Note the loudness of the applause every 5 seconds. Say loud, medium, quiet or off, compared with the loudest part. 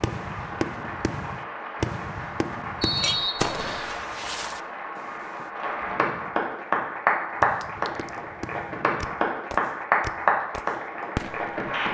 medium, loud, loud.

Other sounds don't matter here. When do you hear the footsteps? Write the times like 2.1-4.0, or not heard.
not heard.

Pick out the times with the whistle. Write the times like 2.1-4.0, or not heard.
2.8-4.0.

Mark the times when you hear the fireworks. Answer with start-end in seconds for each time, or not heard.
0.0-5.5, 7.4-11.7.